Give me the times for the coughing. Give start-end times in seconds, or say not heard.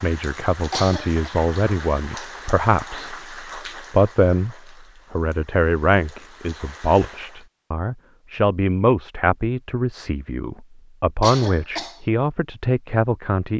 0.7-1.3, 11.2-12.0.